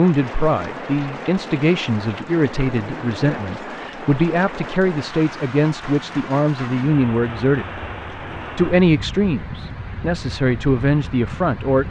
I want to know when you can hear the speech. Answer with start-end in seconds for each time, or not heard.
0.0-7.8, 8.6-11.8.